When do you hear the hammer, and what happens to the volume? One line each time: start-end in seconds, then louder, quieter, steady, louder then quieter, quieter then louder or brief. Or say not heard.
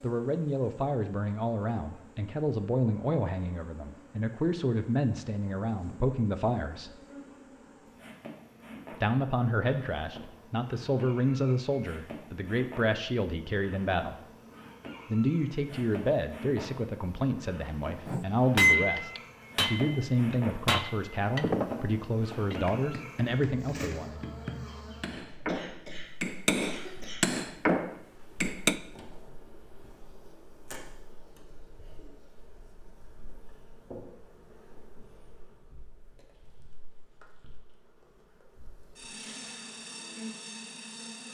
18.1-28.8 quieter then louder.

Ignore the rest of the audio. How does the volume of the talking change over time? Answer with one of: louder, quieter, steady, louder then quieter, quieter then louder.
steady.